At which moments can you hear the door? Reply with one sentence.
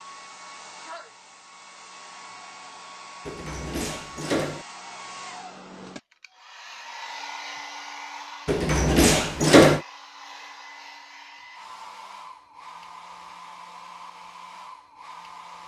The door can be heard from 3.2 to 4.7 s and from 8.4 to 9.8 s.